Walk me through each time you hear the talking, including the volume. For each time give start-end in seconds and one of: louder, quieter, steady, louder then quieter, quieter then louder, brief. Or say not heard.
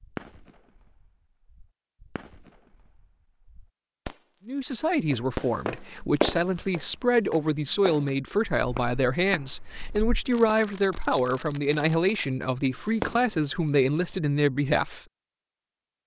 4.5-15.1 steady.